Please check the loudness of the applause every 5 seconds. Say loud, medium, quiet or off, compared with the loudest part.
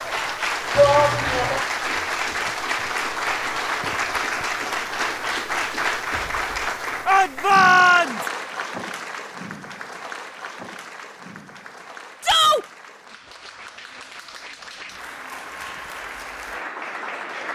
loud, loud, quiet, medium.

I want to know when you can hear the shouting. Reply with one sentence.
The shouting can be heard from 0.8 to 1.6 s, from 7.0 to 8.2 s and from 12.2 to 12.7 s.